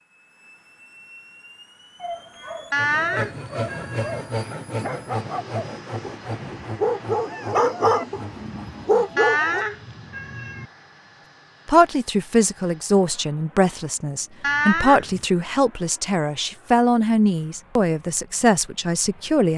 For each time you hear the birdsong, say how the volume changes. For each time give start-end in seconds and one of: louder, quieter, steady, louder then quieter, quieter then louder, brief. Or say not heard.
not heard.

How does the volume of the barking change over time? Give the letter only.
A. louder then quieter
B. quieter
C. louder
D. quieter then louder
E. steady
C.